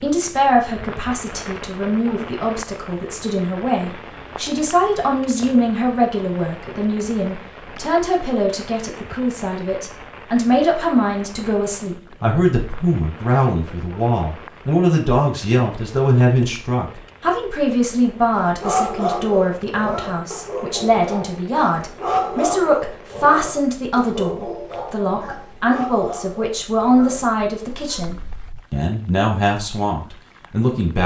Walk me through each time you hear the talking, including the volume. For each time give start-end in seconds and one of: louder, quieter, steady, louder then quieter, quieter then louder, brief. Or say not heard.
0.0-31.0 steady.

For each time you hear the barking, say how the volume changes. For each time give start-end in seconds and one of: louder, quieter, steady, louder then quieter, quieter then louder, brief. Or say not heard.
18.3-28.6 quieter.